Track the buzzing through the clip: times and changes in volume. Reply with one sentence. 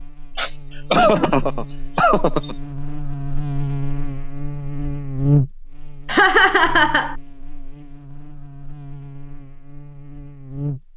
You can hear the buzzing from 0.0 to 10.9 s, getting louder then quieter.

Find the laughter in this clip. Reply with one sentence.
The laughter can be heard from 0.3 to 2.5 s and from 6.0 to 7.2 s.